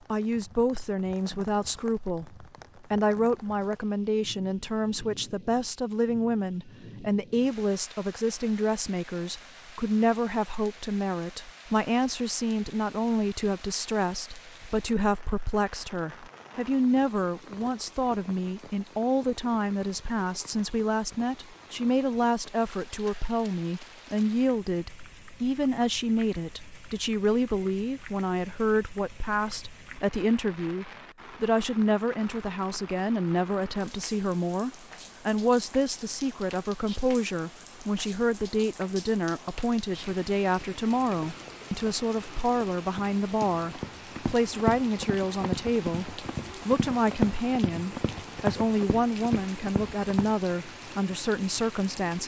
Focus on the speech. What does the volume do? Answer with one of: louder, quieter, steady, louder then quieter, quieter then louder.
steady.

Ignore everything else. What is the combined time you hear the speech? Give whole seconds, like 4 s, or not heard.
52 s.